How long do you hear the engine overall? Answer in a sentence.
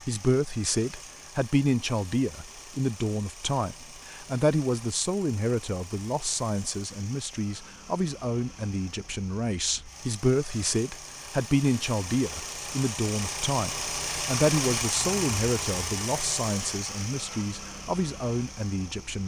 You can hear the engine for 19 seconds altogether.